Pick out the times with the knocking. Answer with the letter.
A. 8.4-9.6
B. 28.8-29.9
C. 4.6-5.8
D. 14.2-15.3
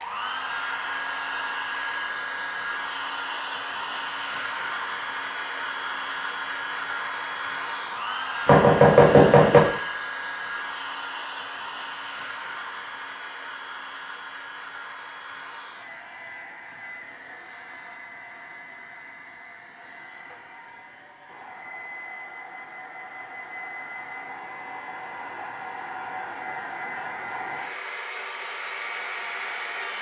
A.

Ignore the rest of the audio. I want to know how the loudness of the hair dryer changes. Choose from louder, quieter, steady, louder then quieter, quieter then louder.
quieter then louder.